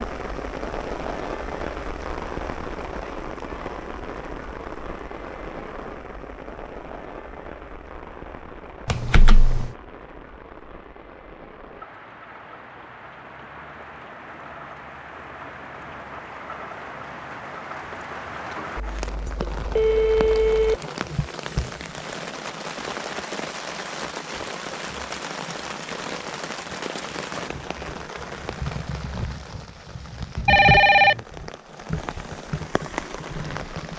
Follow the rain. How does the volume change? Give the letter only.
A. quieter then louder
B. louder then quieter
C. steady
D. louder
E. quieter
A.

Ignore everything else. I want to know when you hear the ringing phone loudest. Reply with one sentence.
The loudest moment of the ringing phone is at 31 seconds.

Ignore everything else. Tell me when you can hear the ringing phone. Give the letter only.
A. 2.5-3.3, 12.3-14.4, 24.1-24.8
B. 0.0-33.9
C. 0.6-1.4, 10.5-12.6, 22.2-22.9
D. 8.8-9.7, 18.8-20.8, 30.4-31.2
D.